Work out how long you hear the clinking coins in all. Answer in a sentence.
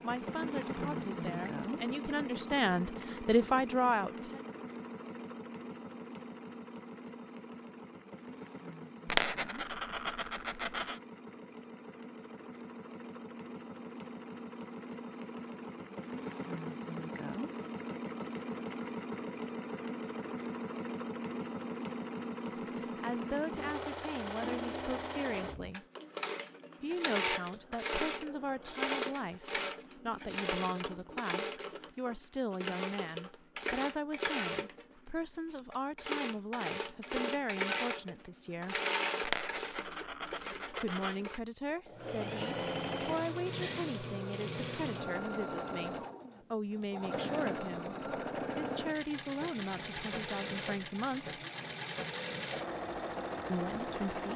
You can hear the clinking coins for 4 seconds altogether.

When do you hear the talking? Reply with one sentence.
You can hear the talking from 0.0 to 4.5 s, from 22.4 to 25.9 s, from 26.8 to 38.8 s, from 40.8 to 51.4 s and from 53.5 to 54.3 s.